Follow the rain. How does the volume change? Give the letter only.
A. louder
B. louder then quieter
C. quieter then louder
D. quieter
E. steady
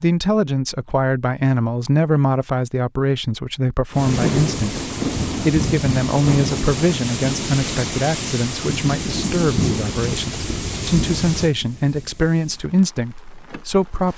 D.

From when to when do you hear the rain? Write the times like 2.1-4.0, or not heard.
3.9-14.1.